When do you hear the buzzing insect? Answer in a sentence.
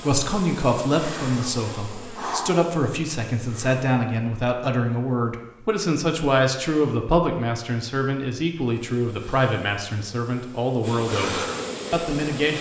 You can hear the buzzing insect from 0.0 to 3.8 s and from 8.8 to 12.5 s.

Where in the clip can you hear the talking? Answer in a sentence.
You can hear the talking from 0.0 to 12.5 s.